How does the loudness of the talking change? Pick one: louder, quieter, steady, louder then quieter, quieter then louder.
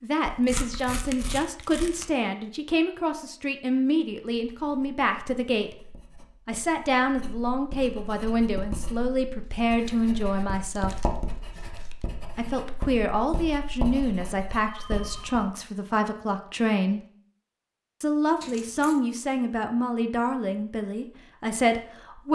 steady.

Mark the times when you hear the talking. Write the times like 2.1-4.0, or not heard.
0.0-5.8, 6.5-10.9, 12.3-17.0, 18.0-22.3.